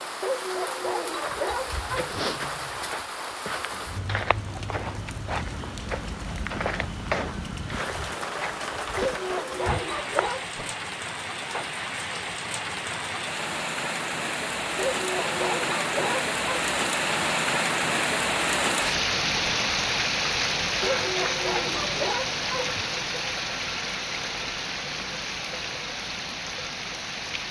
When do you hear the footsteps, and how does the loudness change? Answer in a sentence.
The footsteps can be heard from 1.1 to 10.7 s, at a steady volume.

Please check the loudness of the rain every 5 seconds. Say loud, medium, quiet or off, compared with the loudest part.
medium, medium, medium, loud, loud, medium.